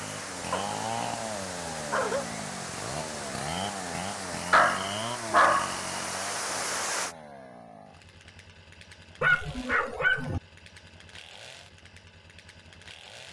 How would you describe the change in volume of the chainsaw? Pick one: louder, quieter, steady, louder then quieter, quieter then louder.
quieter.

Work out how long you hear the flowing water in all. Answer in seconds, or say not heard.
7 s.